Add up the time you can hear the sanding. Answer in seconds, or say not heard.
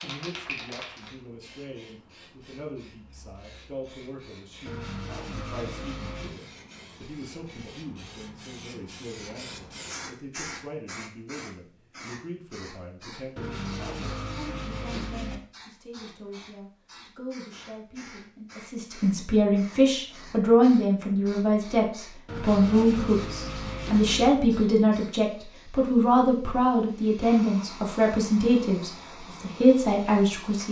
6 s.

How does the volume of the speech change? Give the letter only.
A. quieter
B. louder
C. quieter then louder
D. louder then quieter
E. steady
B.